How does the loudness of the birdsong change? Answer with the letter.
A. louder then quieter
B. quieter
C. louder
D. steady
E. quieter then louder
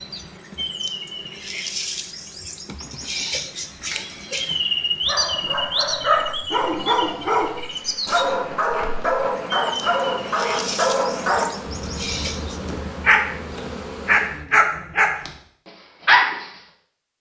A.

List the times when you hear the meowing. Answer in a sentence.
The meowing can't be heard in this clip.